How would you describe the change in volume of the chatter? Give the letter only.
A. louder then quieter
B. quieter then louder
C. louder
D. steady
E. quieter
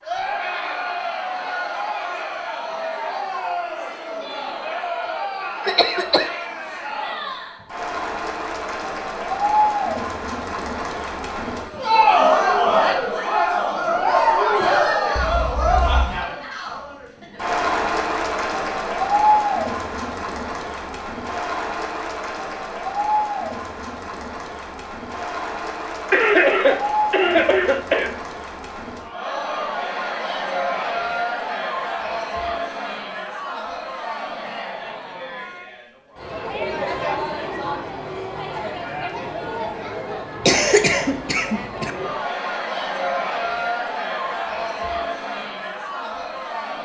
A.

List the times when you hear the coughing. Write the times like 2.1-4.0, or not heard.
5.6-6.3, 26.1-28.1, 40.4-41.9.